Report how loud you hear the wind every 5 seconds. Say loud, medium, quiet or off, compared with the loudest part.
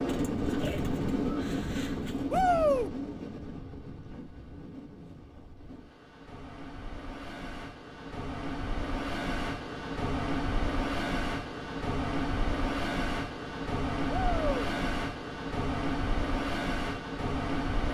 loud, medium, loud, loud.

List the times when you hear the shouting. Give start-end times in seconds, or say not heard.
2.3-2.9, 14.1-14.6.